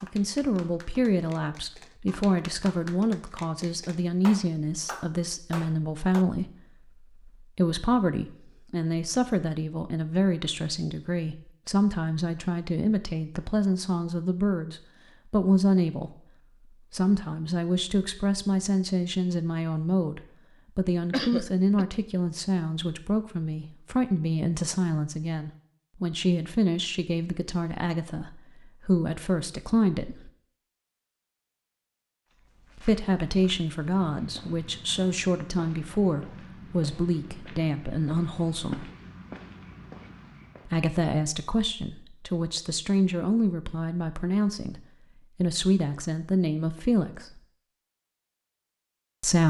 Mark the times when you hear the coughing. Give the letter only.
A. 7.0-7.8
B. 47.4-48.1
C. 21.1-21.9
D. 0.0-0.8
C.